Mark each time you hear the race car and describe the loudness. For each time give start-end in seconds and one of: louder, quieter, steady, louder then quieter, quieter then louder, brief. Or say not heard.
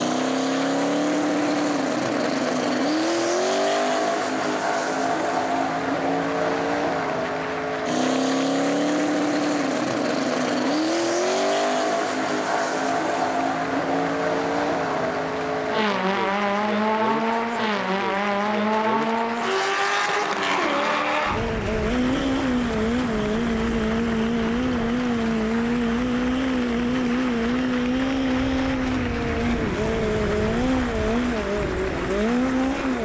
0.0-33.0 steady.